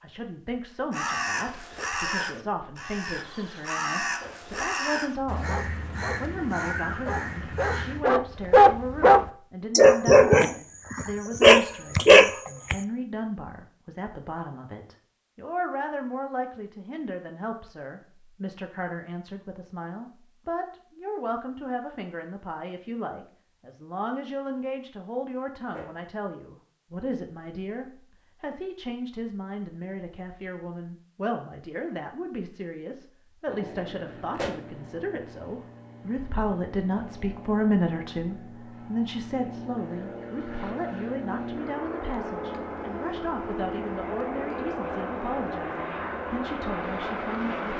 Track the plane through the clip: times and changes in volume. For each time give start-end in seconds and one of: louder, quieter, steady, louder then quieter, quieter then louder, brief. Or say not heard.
33.5-47.7 louder.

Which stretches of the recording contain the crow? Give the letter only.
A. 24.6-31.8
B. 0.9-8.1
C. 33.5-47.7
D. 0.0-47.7
B.